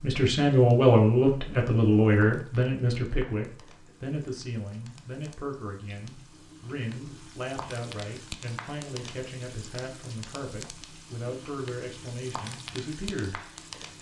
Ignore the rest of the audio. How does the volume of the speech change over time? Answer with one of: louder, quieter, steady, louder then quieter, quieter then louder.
quieter.